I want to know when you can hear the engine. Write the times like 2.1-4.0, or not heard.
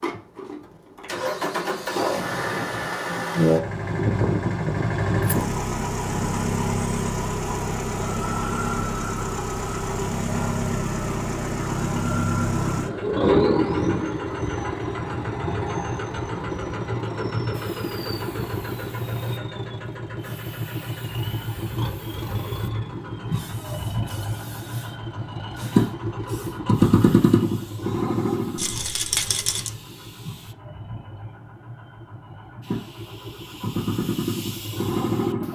0.0-35.4.